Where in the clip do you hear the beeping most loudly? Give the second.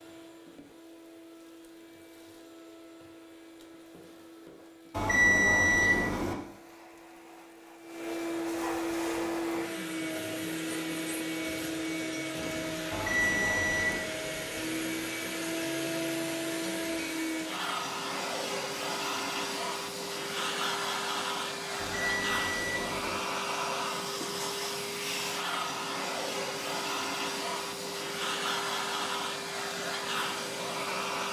5 s.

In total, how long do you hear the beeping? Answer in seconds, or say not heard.
4 s.